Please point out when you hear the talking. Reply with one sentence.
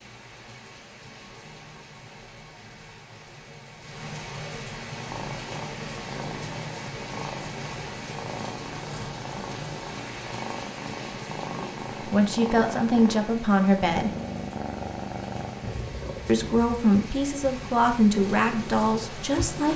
The talking can be heard from 11.6 to 14.1 s and from 16.2 to 19.7 s.